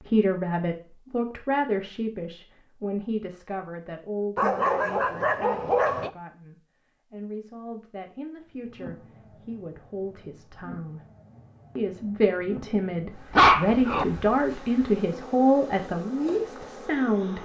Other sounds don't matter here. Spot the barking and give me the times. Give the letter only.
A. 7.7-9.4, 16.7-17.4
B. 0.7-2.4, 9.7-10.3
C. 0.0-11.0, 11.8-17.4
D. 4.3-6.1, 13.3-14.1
D.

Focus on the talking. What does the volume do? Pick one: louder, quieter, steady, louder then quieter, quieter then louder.
quieter then louder.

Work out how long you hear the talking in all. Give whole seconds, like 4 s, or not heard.
17 s.